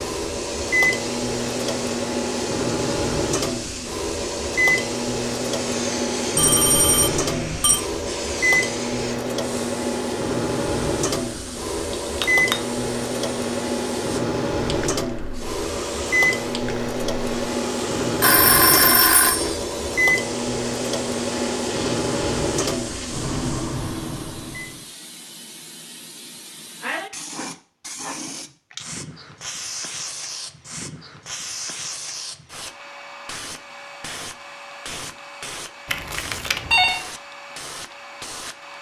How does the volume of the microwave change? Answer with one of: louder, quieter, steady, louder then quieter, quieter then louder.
steady.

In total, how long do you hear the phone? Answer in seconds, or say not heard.
4 s.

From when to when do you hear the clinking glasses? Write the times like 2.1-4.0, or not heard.
11.9-12.6.